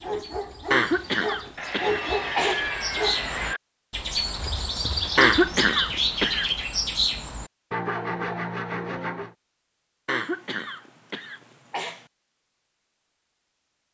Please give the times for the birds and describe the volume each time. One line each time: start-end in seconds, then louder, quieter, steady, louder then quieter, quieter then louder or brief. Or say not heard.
0.0-7.5 louder.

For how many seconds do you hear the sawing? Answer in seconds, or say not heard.
4 s.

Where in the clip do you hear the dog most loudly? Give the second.
2 s.